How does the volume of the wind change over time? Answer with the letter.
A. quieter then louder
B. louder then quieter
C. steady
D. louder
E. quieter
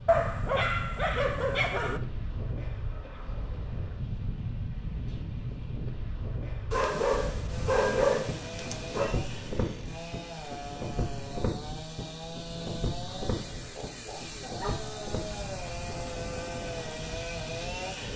C.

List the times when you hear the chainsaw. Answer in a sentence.
You can hear the chainsaw from 7.5 to 18.1 s.